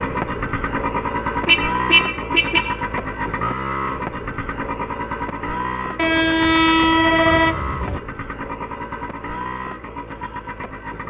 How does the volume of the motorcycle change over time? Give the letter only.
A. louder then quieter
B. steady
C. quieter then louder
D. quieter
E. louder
D.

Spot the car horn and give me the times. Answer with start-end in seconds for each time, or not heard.
1.4-2.8, 6.0-8.0.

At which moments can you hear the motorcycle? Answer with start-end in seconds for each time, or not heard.
0.0-11.0.